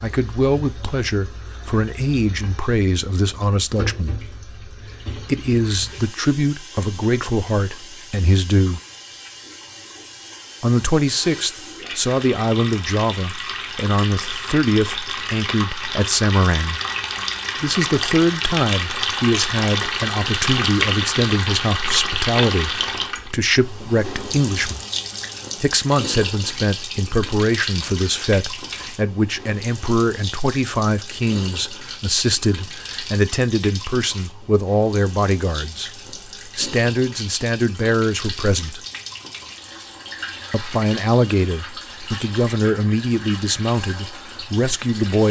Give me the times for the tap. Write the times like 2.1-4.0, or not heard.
0.0-45.2.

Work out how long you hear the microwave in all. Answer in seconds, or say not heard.
not heard.